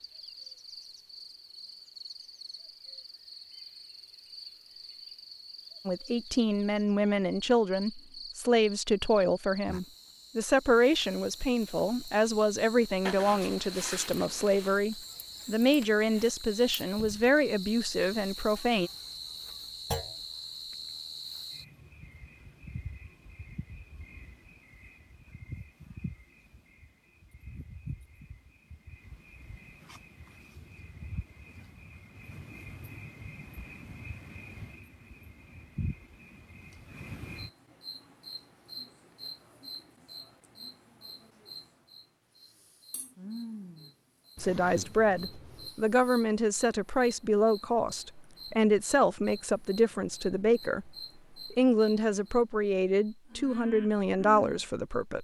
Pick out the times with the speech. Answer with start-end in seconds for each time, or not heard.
5.8-18.9, 44.4-50.9, 51.5-55.1.